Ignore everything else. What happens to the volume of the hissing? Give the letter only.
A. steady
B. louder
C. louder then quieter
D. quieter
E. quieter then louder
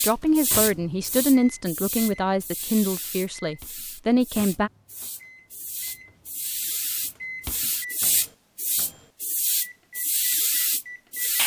E.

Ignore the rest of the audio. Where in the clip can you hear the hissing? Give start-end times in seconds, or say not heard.
0.0-11.4.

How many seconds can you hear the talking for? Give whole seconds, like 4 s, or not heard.
5 s.